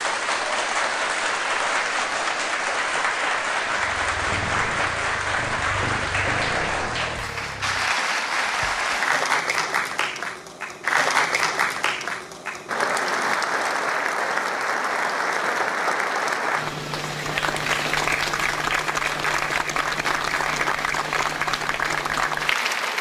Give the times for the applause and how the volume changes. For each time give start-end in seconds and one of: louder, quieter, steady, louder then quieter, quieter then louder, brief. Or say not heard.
0.0-22.9 steady.